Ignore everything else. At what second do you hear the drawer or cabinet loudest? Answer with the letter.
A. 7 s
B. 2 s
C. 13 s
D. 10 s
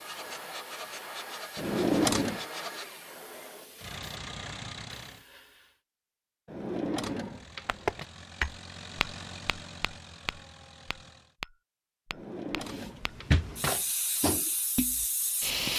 B.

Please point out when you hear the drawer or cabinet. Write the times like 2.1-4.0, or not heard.
1.6-2.5, 6.5-8.1, 12.1-13.8.